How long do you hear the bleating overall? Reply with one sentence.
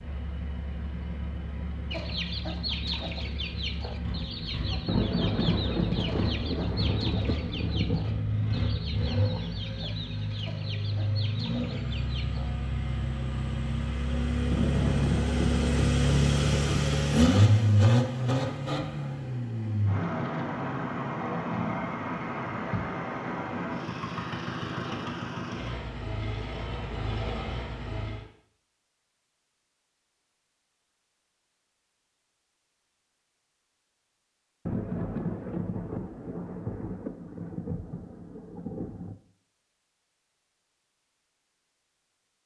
The bleating can't be heard in this clip.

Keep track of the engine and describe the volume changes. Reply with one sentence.
The loudness of the engine goes up, then down.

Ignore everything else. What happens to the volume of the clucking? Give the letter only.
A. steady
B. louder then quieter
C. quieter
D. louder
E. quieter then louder
C.